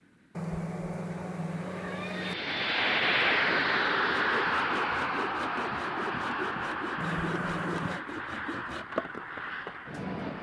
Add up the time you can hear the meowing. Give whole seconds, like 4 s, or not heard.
3 s.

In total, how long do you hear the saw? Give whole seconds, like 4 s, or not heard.
6 s.